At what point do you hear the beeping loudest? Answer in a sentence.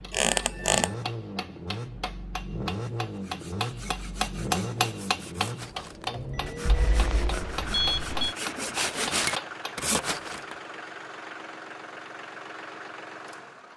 The volume of the beeping peaks at 8 seconds.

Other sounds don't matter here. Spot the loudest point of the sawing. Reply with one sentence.
The volume of the sawing peaks at 9 seconds.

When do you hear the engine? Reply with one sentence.
You can hear the engine from 0.0 to 13.7 s.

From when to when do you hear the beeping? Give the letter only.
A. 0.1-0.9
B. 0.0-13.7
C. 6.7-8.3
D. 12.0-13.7
C.